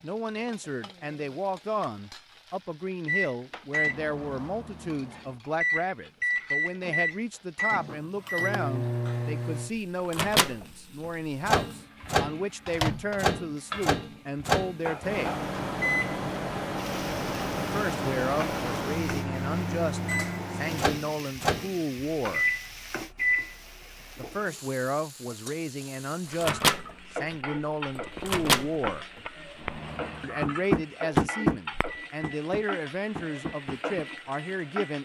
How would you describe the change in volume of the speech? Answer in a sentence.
The volume of the speech stays about the same.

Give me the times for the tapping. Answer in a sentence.
The tapping can be heard from 27.9 to 34.0 s.